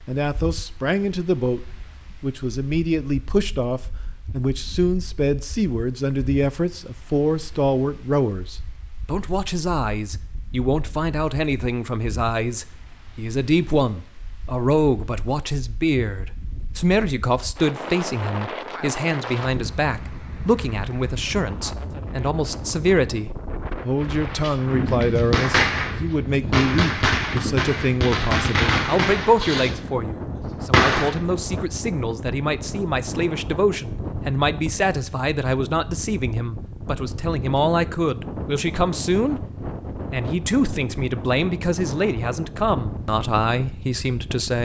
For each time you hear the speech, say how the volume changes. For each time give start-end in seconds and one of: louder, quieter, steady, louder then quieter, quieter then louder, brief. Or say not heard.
0.1-44.6 steady.